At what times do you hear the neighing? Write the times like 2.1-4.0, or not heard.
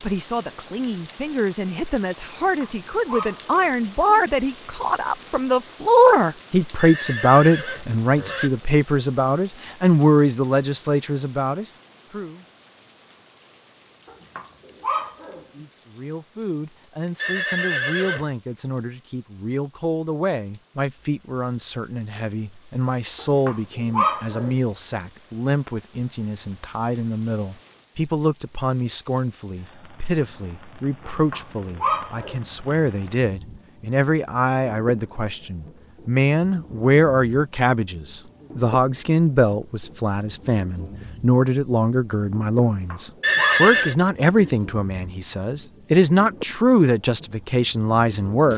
6.8-8.5, 17.1-18.3, 43.2-44.0.